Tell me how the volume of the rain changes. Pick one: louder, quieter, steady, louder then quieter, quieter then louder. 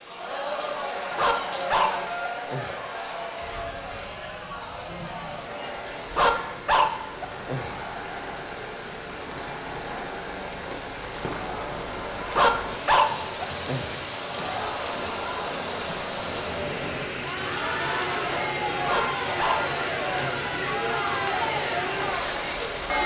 louder.